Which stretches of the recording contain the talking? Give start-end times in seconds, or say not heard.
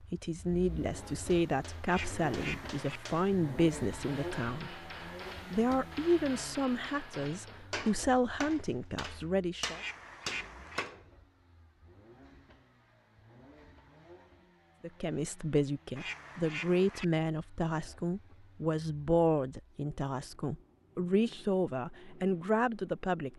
0.0-4.8, 5.5-9.8, 14.8-23.3.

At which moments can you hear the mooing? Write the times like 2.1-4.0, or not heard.
not heard.